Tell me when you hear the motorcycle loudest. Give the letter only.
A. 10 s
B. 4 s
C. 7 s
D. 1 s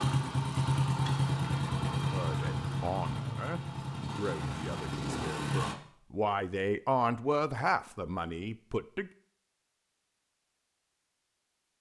D.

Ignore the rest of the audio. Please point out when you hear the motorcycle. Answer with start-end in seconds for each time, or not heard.
0.0-5.8.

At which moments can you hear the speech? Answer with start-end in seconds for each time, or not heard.
2.1-9.1.